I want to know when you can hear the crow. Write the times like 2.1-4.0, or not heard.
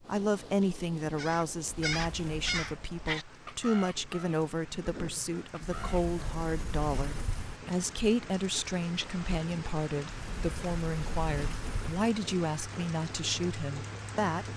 1.0-6.0.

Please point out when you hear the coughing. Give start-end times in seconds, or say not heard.
not heard.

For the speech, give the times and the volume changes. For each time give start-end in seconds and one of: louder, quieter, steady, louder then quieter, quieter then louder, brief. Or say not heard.
0.1-14.5 steady.